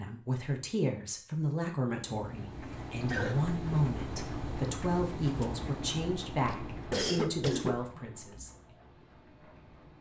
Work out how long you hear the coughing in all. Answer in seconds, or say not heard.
2 s.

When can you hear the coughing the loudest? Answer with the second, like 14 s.
7 s.